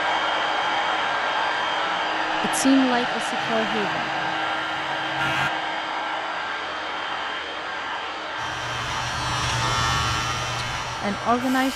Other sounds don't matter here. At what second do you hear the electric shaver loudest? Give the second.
10 s.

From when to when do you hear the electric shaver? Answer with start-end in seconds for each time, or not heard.
3.4-5.5, 8.3-11.7.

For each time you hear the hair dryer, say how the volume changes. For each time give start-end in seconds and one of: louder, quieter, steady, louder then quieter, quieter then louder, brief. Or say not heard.
0.0-11.7 quieter.